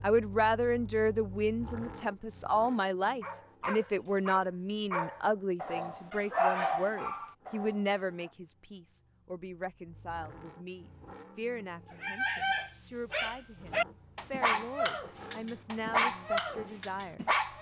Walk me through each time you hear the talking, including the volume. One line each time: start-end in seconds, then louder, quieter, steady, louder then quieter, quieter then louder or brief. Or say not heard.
0.0-17.5 quieter.